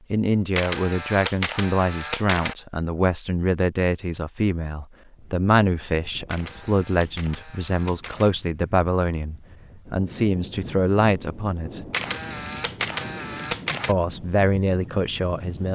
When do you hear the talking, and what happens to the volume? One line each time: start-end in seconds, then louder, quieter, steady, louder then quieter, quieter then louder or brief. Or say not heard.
0.1-11.8 steady
13.8-15.6 brief.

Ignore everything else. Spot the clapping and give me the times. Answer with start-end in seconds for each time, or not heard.
not heard.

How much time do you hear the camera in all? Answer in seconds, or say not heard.
6 s.